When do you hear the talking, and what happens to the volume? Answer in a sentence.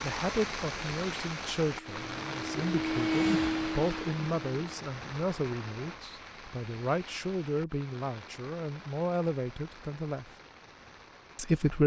The talking can be heard from 0.0 to 10.3 s, at a steady volume; and briefly from 11.3 to 11.8 s.